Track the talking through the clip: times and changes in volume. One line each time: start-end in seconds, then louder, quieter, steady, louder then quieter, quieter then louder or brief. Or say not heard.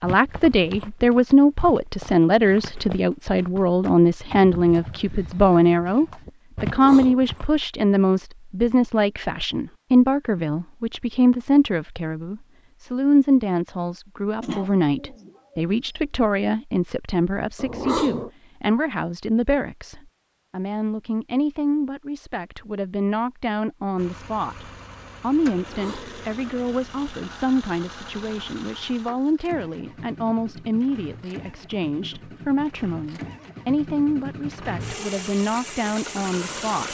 0.0-36.8 quieter.